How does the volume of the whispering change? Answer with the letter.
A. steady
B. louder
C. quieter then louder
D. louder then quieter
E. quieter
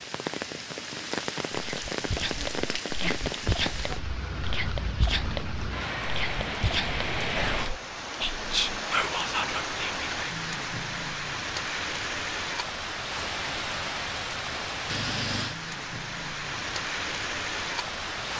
B.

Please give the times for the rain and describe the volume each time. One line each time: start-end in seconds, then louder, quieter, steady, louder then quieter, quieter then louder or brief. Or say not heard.
0.0-18.3 steady.